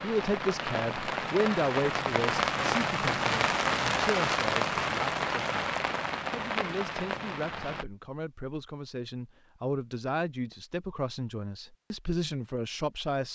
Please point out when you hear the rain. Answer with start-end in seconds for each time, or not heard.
0.0-7.8.